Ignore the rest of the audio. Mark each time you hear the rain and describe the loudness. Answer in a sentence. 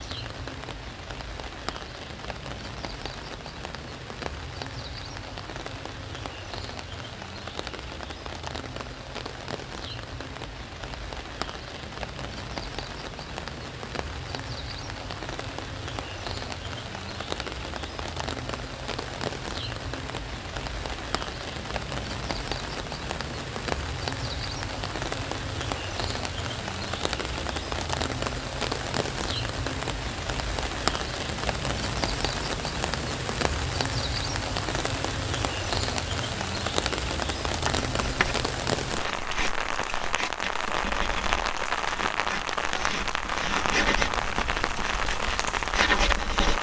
The rain can be heard from 0.0 to 46.5 s, getting louder.